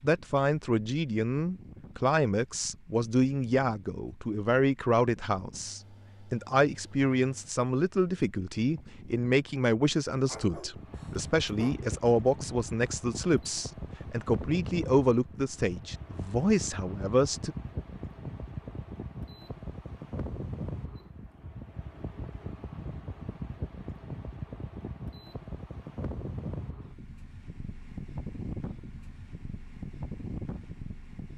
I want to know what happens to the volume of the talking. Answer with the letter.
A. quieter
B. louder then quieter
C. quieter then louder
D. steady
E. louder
D.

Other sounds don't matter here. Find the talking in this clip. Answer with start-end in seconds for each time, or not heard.
0.0-17.6.